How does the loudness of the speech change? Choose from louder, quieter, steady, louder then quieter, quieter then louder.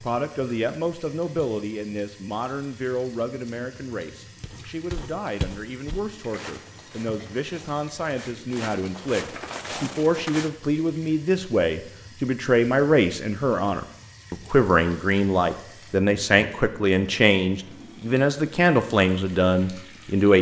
louder.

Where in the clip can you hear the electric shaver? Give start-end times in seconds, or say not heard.
not heard.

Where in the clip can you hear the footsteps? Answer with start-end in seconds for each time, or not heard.
4.4-10.5.